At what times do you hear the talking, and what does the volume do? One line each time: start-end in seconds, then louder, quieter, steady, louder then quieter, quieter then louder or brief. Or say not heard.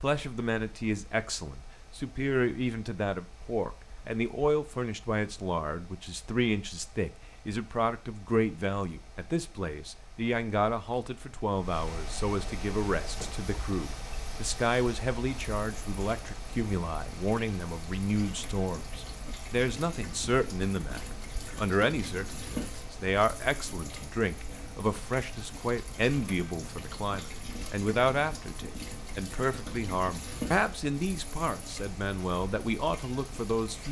0.0-33.8 steady.